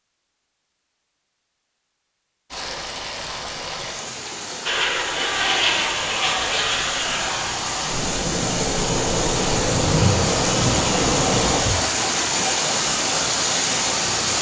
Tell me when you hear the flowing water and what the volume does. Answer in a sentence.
You can hear the flowing water from 2.5 to 14.3 s, getting louder.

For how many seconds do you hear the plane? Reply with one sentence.
You can hear the plane for 7 seconds altogether.